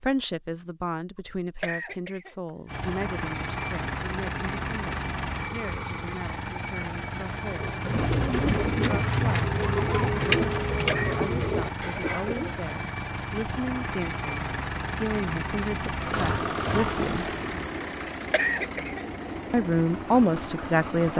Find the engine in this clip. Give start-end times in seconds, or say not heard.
2.6-21.1.